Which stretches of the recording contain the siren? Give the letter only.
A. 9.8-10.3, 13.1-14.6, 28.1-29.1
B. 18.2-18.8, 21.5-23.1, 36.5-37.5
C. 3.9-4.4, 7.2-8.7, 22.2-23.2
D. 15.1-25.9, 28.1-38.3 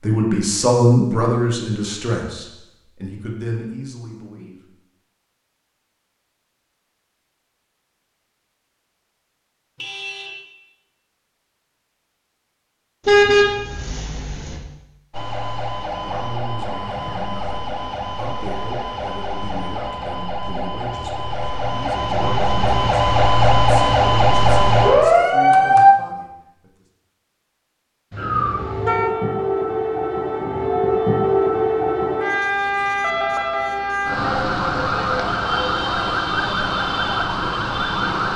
D.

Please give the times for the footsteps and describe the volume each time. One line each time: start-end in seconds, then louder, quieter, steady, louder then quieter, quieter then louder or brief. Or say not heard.
not heard.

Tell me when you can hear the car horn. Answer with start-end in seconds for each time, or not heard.
9.8-10.3, 13.1-14.6, 28.1-29.1.